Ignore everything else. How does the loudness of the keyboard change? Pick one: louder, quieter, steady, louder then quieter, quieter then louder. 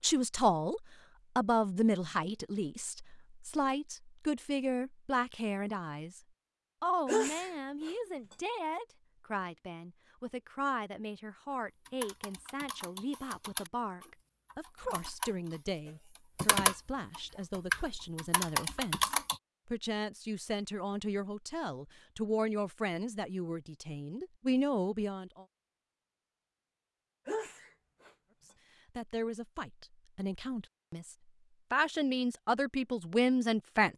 quieter then louder.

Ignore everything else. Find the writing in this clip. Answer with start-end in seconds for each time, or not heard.
not heard.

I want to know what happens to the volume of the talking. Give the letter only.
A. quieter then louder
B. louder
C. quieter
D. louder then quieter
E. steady
A.